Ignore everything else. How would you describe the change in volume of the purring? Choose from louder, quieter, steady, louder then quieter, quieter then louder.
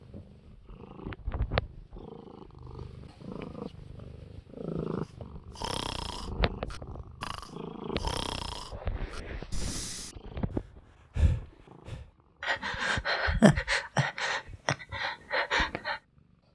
quieter.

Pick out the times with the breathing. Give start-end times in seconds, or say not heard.
5.0-16.0.